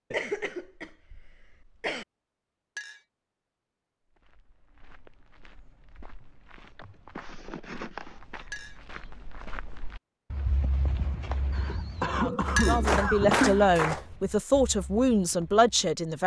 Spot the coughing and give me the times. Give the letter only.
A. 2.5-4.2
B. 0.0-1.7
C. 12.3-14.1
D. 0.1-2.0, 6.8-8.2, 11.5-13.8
D.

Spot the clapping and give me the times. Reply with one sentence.
You can hear the clapping from 12.3 to 14.1 s.